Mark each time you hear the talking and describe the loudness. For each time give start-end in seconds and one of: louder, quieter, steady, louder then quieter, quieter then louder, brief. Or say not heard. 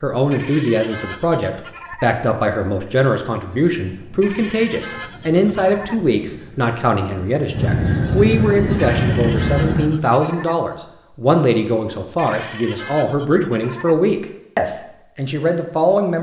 0.0-16.1 steady.